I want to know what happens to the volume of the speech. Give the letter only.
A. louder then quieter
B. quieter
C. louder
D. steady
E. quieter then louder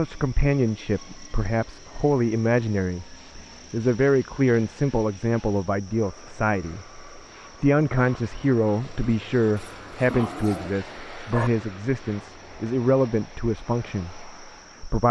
D.